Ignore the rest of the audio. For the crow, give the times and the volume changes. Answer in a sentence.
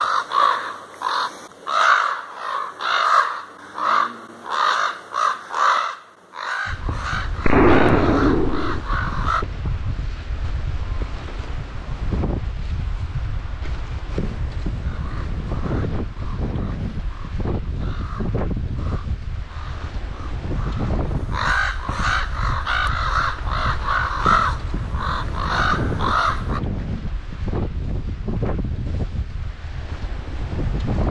You can hear the crow from 0.0 to 9.4 s, getting quieter; and from 14.8 to 26.6 s, getting louder.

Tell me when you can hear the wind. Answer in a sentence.
The wind can be heard from 6.7 to 31.0 s.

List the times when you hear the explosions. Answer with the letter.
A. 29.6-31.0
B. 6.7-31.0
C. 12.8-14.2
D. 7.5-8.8
D.